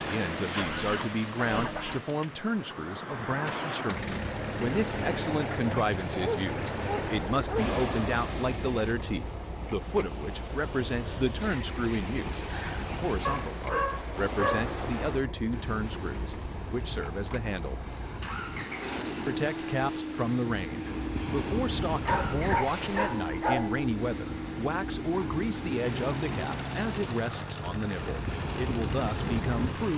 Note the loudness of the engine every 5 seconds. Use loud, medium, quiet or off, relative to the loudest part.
loud, loud, medium, loud, loud, loud.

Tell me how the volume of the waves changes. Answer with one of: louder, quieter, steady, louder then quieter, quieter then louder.
steady.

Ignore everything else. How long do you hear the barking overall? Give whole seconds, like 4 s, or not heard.
5 s.